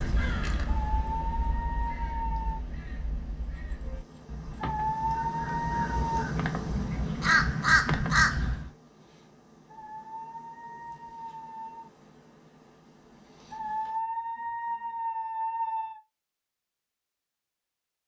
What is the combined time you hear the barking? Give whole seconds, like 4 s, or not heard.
8 s.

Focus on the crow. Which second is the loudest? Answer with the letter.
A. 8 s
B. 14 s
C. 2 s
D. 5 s
A.